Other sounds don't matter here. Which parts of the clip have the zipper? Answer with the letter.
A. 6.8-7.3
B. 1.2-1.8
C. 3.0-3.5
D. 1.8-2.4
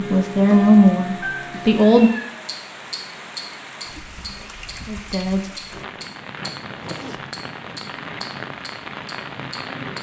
A.